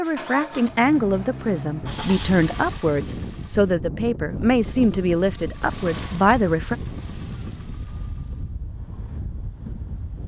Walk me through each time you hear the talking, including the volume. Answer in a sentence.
The talking can be heard from 0.0 to 6.8 s, at a steady volume.